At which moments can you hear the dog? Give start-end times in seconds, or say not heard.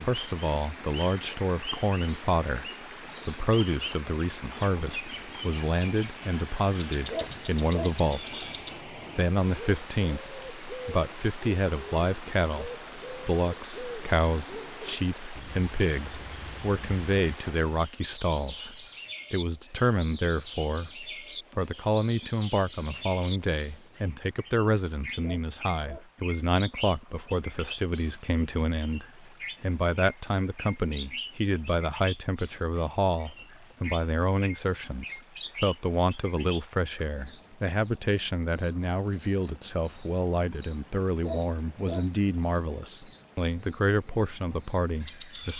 7.1-8.0, 25.2-26.1, 41.2-42.0.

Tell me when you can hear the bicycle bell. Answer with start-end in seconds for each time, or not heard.
not heard.